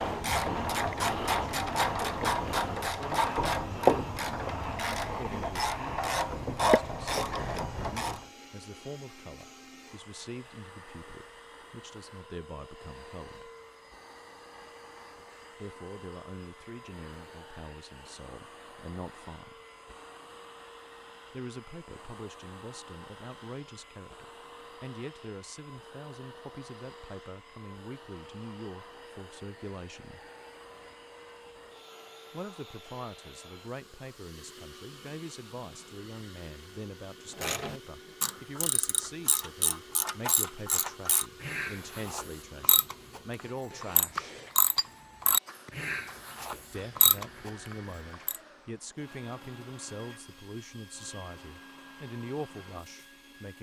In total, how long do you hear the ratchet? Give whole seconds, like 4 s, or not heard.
19 s.